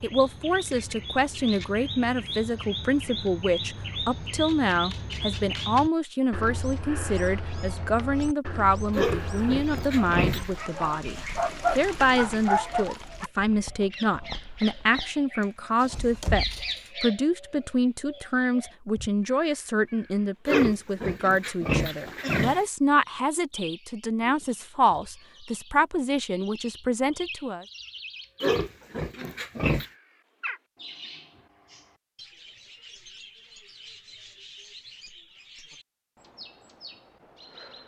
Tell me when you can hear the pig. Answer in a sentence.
The pig can be heard from 8.9 to 10.6 s, from 20.4 to 22.6 s and from 28.4 to 29.9 s.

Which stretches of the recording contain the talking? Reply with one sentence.
You can hear the talking from 0.0 to 11.2 s and from 11.8 to 27.6 s.